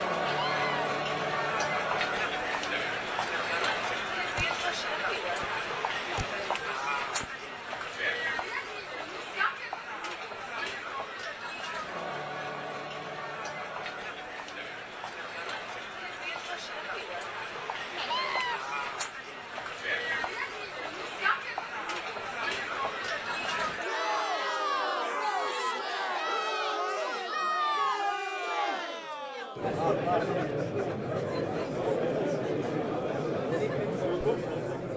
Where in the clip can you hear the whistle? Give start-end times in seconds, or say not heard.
not heard.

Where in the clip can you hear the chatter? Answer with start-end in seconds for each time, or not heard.
0.0-34.9.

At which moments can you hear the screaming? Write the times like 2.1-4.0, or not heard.
0.2-0.8, 17.9-18.6.